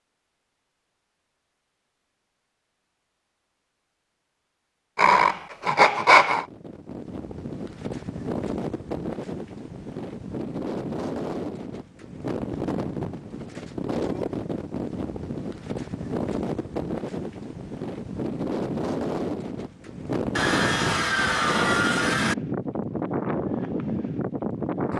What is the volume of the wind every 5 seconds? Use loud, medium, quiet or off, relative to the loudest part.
off, medium, loud, loud, loud.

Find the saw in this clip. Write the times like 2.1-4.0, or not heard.
5.0-6.5, 20.4-22.4.